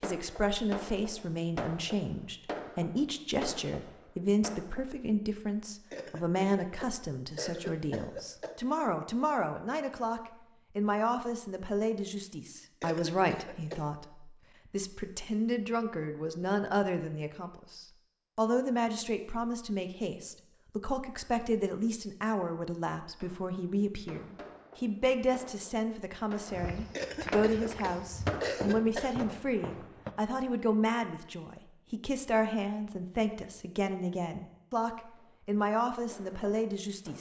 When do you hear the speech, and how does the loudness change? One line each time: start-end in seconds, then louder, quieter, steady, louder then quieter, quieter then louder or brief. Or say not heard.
0.0-37.1 steady.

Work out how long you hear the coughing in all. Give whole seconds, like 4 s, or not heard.
6 s.